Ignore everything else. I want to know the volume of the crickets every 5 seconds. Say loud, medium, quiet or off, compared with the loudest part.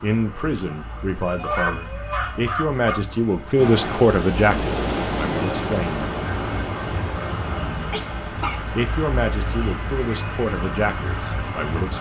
medium, loud, loud.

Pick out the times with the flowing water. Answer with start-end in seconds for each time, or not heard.
3.5-11.9.